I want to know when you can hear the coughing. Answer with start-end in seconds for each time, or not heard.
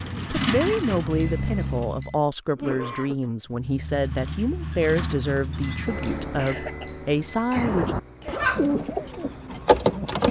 2.5-3.3, 6.3-8.3.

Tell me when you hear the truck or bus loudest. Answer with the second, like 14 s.
1 s.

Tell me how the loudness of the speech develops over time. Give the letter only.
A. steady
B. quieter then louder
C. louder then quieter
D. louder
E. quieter
A.